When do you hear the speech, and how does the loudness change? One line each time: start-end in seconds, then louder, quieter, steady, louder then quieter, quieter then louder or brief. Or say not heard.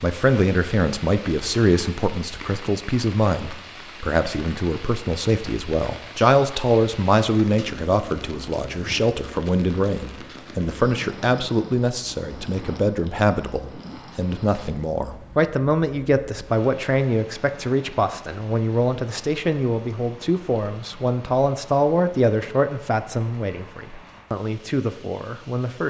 0.0-25.8 steady.